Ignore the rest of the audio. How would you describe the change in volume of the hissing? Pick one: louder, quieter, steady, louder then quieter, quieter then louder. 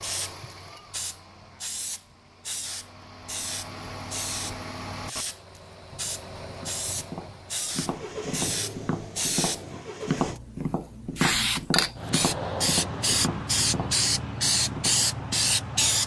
louder.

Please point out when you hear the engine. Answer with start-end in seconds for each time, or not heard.
0.0-10.4.